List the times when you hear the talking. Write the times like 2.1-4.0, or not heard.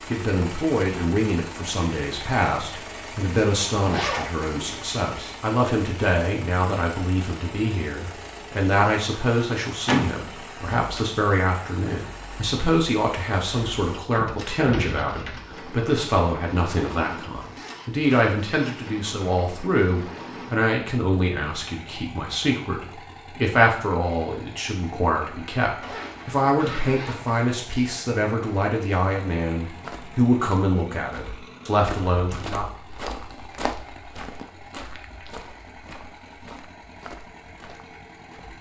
0.1-32.6.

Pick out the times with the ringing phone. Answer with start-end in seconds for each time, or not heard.
not heard.